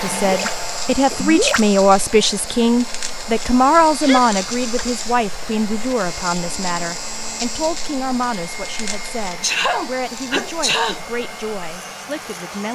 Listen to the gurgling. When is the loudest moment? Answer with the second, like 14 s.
1 s.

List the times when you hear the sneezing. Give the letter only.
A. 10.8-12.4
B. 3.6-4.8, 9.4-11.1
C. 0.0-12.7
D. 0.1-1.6
B.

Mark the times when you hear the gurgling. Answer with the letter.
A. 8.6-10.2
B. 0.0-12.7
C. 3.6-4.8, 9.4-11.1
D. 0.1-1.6
D.